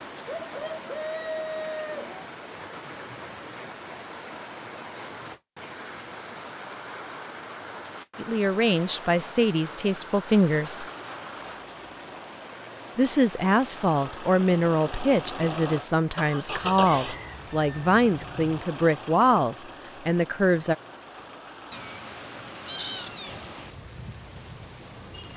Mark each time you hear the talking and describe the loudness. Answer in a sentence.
The talking can be heard briefly from 8.2 to 10.8 s; and from 12.9 to 20.8 s, at a steady volume.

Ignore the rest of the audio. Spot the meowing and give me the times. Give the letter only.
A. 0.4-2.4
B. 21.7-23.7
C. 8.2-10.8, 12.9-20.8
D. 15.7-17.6
B.